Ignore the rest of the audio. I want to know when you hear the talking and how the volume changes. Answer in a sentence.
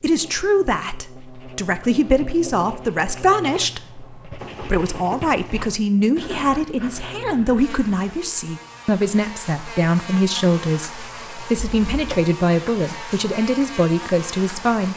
The talking can be heard from 0.0 to 14.9 s, at a steady volume.